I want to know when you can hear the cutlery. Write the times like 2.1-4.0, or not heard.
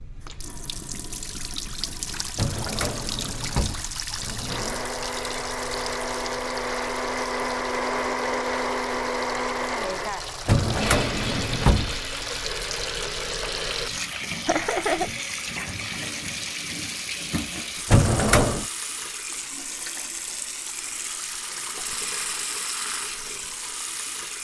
not heard.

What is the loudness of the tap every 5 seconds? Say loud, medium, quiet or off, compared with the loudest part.
loud, medium, loud, loud, loud.